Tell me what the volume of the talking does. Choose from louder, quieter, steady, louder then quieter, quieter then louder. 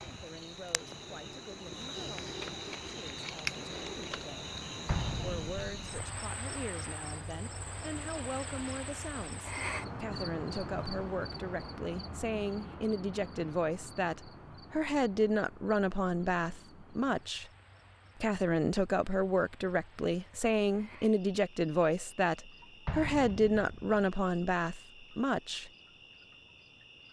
louder.